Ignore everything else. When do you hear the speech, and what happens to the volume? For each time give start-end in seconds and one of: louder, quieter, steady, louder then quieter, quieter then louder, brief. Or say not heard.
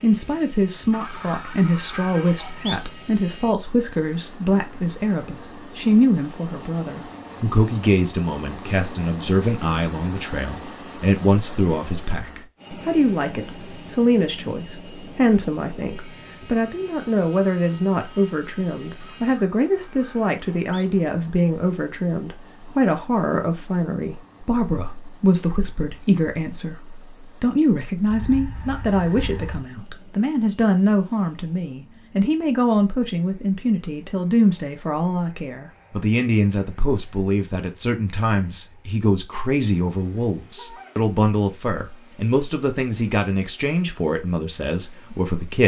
0.0-45.6 steady.